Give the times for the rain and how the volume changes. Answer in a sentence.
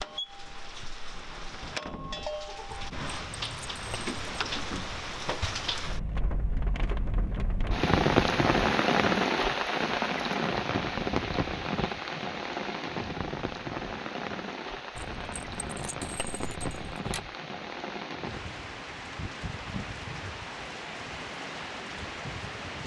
You can hear the rain from 0.0 to 22.8 s, getting louder then quieter.